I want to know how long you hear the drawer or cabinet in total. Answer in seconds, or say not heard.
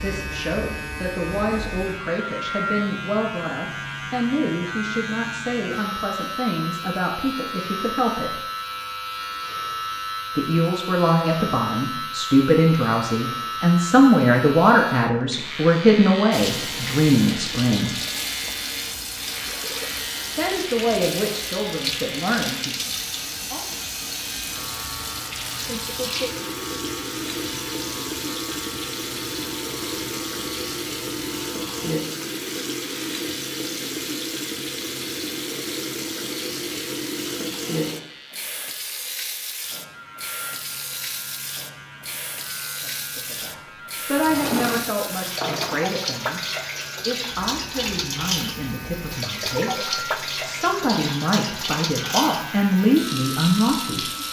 2 s.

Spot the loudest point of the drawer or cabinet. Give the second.
45 s.